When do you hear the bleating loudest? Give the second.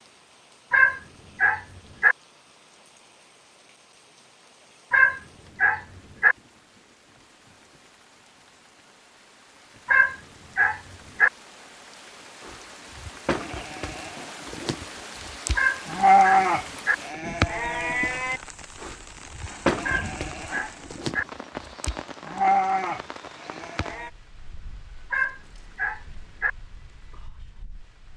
16 s.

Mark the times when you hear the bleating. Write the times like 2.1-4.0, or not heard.
12.4-24.1.